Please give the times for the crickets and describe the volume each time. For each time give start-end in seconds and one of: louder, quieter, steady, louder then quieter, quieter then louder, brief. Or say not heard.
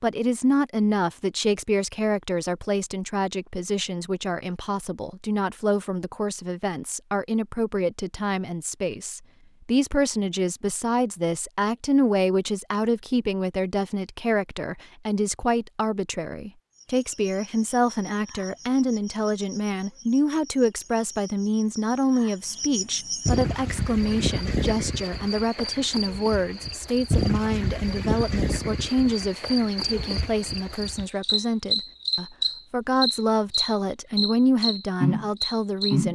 16.7-36.1 louder.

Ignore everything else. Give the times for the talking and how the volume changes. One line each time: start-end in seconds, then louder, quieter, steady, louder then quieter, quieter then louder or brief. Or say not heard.
0.0-36.1 steady.